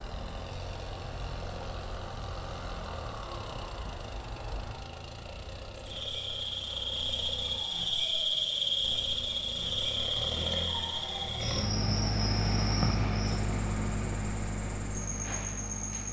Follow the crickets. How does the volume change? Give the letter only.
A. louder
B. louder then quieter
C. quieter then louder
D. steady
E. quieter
B.